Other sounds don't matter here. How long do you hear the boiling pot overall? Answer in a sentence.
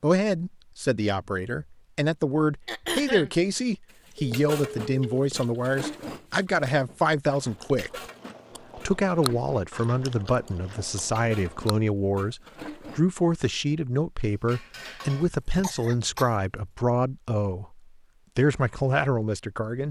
You can't hear the boiling pot here.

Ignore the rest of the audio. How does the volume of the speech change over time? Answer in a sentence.
The loudness of the speech stays about the same.